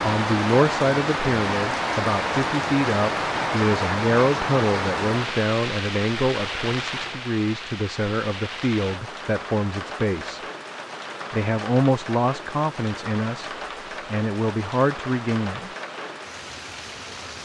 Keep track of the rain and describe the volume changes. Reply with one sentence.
The volume of the rain goes down.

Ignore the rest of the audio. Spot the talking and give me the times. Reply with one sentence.
The talking can be heard from 0.0 to 10.4 s, from 11.3 to 13.5 s and from 14.1 to 15.7 s.